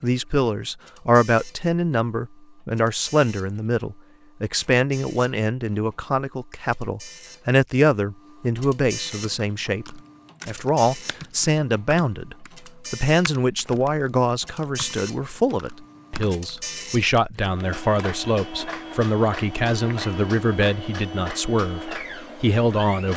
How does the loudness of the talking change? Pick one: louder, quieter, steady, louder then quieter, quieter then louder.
steady.